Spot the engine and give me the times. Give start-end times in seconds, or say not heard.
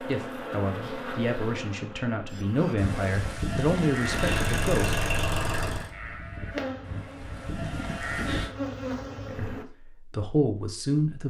3.9-5.9.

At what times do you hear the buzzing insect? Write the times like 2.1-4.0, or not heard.
0.0-3.4, 6.5-9.7.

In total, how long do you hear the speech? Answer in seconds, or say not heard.
7 s.